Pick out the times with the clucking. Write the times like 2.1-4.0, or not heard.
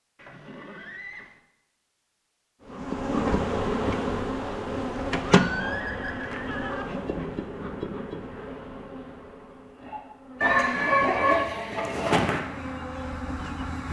10.4-12.4.